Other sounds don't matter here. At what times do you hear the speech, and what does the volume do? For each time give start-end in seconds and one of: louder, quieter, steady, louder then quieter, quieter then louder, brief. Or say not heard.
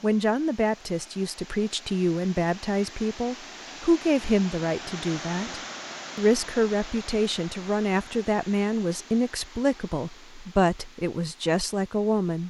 0.0-12.4 steady.